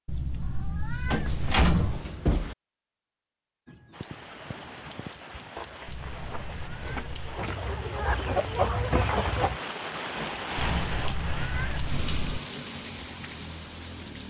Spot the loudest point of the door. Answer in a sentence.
The loudest moment of the door is at 2 seconds.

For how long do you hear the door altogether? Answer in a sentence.
The door can be heard for 2 seconds in total.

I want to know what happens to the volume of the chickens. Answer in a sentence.
The volume of the chickens goes up.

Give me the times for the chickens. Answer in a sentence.
The chickens can be heard from 3.6 to 9.6 s.